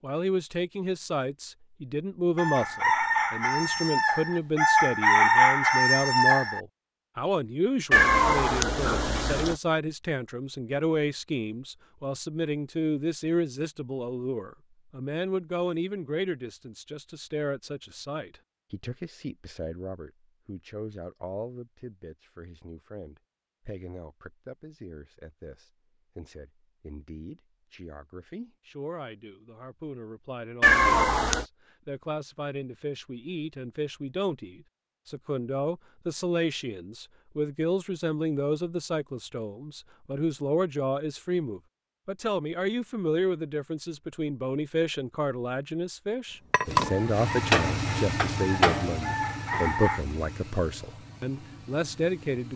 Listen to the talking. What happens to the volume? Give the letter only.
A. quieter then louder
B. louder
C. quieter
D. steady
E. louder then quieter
A.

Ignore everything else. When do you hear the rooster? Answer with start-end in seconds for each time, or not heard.
2.4-6.6, 46.8-50.0.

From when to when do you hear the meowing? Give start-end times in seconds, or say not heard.
7.9-9.6, 30.6-31.4.